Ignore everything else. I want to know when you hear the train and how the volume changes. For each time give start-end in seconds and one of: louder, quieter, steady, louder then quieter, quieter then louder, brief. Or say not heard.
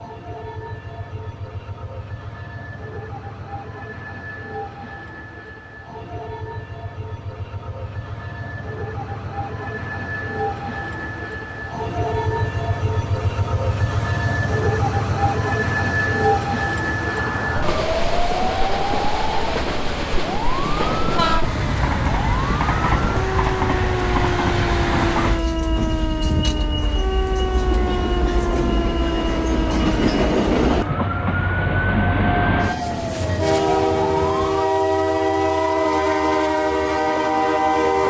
0.0-38.0 louder.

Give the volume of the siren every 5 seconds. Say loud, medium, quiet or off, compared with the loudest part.
off, off, off, loud, loud, loud, loud, loud.